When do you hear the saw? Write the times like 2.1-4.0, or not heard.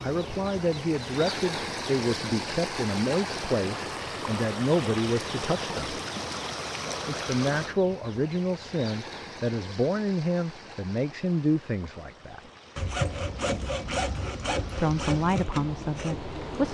12.8-16.6.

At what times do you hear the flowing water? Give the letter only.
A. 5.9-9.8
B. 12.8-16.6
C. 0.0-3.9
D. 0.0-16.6
D.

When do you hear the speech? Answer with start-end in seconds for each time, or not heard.
0.0-6.0, 7.0-12.4, 14.8-16.6.